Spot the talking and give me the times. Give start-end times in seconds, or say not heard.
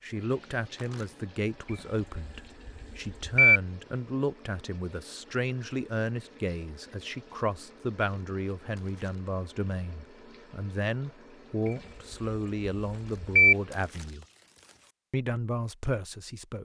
0.0-14.2, 15.1-16.6.